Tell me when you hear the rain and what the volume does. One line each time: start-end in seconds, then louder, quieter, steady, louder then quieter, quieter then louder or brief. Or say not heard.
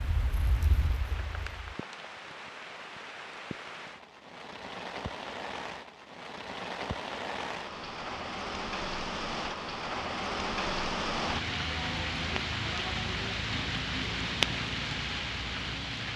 0.0-16.1 louder.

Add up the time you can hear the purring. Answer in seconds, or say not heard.
2 s.